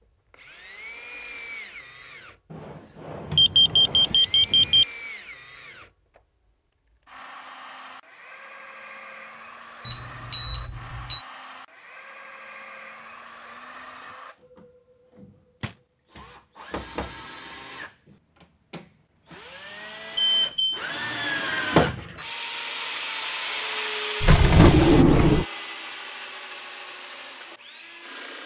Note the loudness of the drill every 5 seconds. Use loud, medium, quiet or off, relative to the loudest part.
quiet, quiet, quiet, quiet, loud, medium.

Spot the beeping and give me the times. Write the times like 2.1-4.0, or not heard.
3.4-4.8, 9.8-11.2, 20.1-20.8.